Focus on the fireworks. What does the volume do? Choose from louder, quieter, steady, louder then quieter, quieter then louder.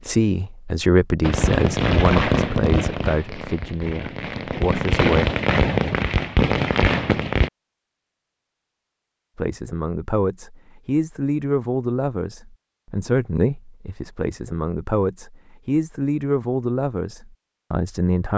quieter then louder.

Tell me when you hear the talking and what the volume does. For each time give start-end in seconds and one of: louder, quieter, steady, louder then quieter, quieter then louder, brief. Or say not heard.
0.1-5.2 quieter
9.3-18.3 steady.